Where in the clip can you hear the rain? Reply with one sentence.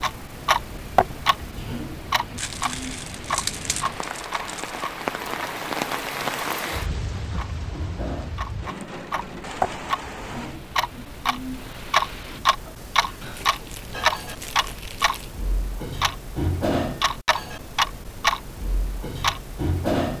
The rain can be heard from 0.0 to 12.4 s.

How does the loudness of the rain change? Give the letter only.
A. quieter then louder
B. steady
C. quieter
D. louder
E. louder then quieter
E.